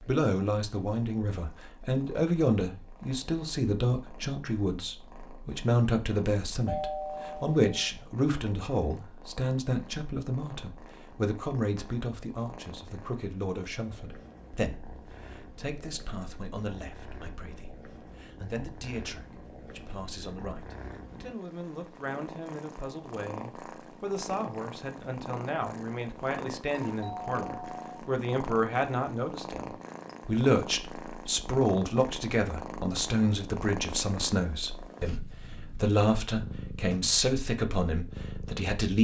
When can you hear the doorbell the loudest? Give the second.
7 s.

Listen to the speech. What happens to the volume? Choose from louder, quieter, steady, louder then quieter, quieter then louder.
quieter then louder.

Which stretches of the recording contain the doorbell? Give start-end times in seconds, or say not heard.
6.7-7.9, 26.8-28.0.